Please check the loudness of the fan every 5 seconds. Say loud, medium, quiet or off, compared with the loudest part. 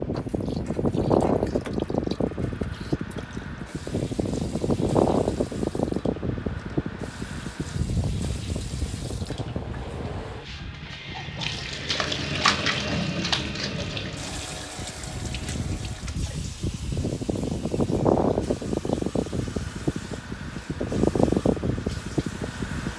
loud, loud, quiet, loud, loud.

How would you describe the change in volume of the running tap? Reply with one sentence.
The volume of the running tap goes up, then down.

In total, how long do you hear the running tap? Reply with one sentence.
The running tap can be heard for 23 seconds in total.